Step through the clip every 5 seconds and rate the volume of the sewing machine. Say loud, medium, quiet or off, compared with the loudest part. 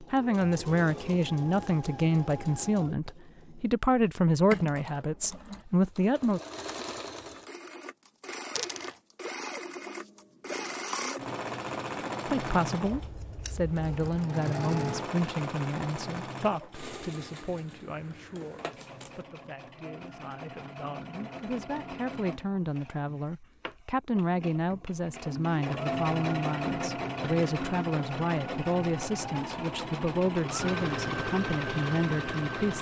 medium, medium, loud, medium, medium, loud, loud.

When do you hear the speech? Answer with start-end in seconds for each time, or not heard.
0.0-6.4, 12.2-32.7.